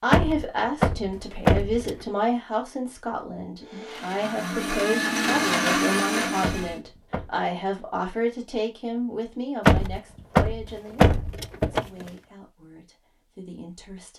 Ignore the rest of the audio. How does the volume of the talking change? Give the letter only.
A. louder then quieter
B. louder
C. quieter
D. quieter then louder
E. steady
C.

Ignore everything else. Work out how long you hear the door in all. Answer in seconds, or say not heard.
5 s.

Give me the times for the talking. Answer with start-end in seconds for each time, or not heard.
0.0-14.1.